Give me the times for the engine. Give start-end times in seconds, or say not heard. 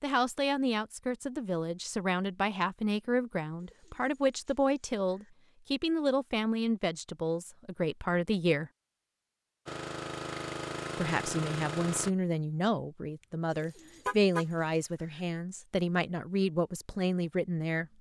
9.7-12.1.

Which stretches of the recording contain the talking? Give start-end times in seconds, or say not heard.
0.0-8.7, 10.9-17.9.